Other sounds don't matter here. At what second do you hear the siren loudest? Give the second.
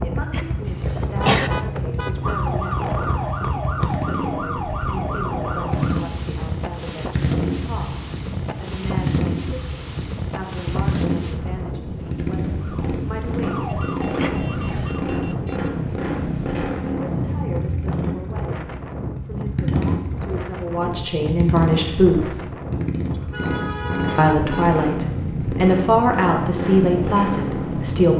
3 s.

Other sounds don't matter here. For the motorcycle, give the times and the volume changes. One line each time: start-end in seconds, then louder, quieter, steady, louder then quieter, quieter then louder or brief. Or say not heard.
0.0-28.1 steady.